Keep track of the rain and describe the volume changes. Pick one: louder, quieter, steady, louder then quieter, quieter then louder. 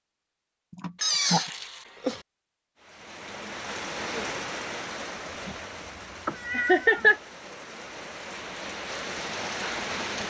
quieter then louder.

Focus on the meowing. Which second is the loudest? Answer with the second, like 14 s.
1 s.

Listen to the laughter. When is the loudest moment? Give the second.
7 s.